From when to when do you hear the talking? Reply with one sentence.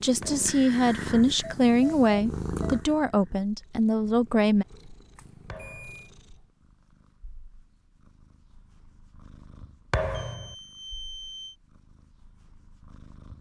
You can hear the talking from 0.0 to 4.7 s.